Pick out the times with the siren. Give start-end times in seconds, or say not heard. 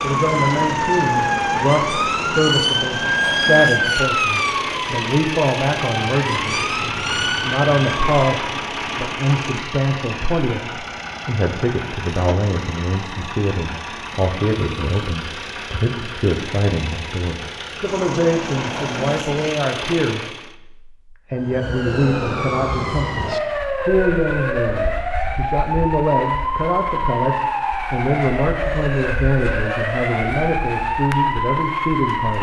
0.0-8.3, 21.4-32.3.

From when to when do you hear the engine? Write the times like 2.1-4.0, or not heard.
0.0-20.6.